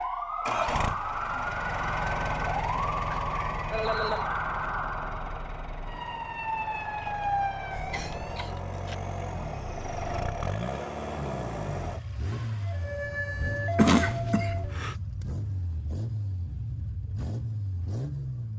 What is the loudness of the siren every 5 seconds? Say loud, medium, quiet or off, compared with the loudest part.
loud, loud, loud, off.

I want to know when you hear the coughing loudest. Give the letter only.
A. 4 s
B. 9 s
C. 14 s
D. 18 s
C.